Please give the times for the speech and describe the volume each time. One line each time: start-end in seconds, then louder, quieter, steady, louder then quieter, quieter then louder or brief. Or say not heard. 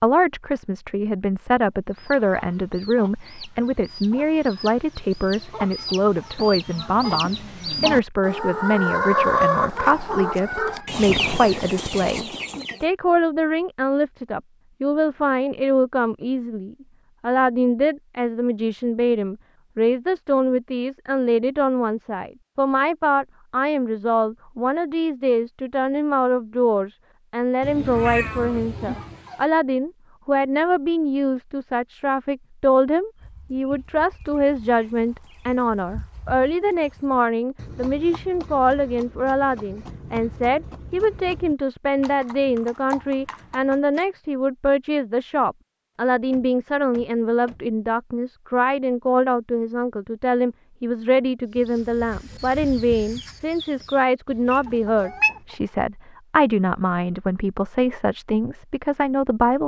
0.0-59.6 steady.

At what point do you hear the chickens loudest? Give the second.
9 s.